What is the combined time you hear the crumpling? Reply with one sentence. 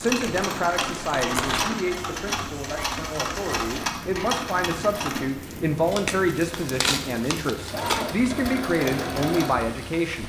The crumpling can be heard for 4 seconds in total.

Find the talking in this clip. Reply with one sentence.
The talking can be heard from 0.0 to 10.2 s.